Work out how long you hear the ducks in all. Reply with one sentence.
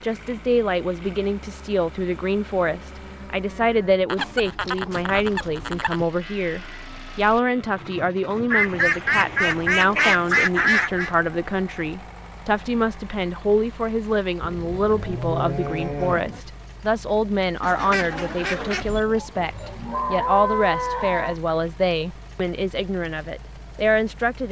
You can hear the ducks for 6 seconds altogether.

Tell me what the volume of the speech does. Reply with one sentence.
The volume of the speech stays about the same.